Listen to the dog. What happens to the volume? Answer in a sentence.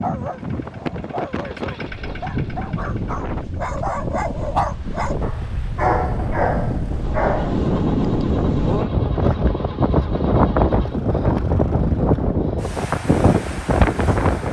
The loudness of the dog goes up.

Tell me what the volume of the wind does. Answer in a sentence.
The volume of the wind goes up.